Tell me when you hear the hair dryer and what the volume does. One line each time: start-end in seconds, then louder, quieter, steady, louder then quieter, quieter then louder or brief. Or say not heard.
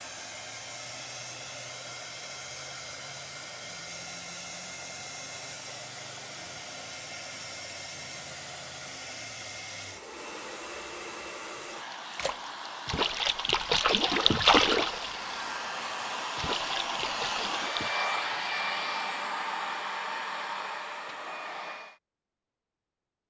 0.0-22.0 louder.